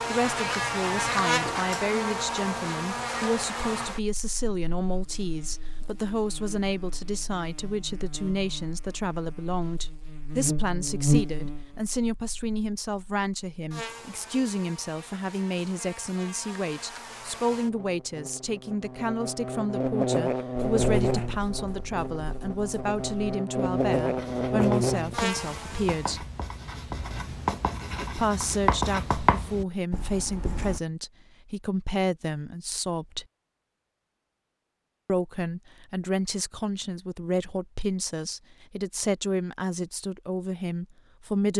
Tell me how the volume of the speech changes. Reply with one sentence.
The loudness of the speech stays about the same.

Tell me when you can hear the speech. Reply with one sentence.
The speech can be heard from 0.1 to 26.2 s, from 28.1 to 33.2 s and from 35.0 to 41.5 s.